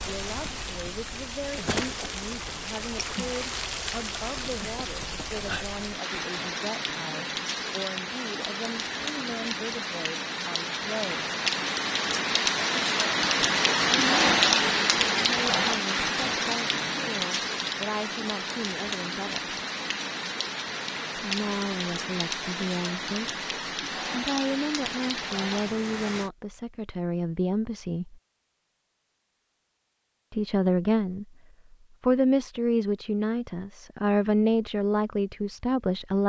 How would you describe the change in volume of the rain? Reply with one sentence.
The volume of the rain goes up, then down.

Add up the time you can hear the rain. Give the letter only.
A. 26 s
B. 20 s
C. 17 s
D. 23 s
A.